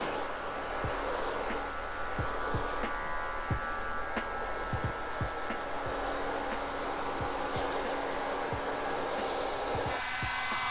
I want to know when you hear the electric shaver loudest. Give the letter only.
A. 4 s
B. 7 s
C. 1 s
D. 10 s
A.